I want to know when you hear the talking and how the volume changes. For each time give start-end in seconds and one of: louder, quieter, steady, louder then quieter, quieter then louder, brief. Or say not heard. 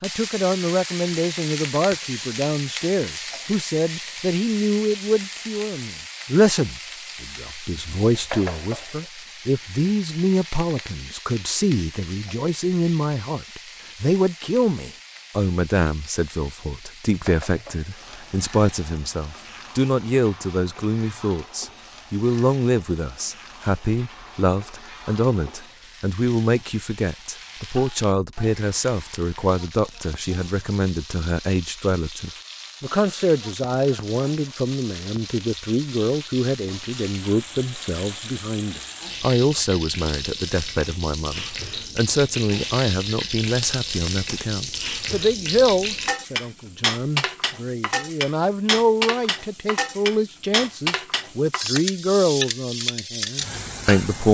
0.0-54.2 steady.